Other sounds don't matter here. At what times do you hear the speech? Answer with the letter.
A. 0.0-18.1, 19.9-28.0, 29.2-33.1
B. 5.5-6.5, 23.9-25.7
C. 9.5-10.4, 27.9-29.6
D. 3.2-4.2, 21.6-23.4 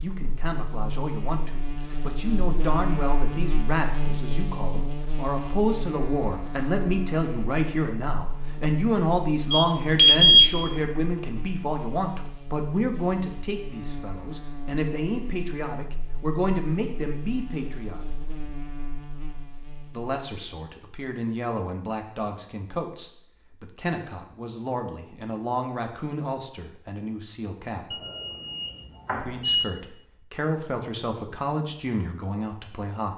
A.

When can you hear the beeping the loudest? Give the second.
10 s.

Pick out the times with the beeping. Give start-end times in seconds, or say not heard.
9.5-10.4, 27.9-29.6.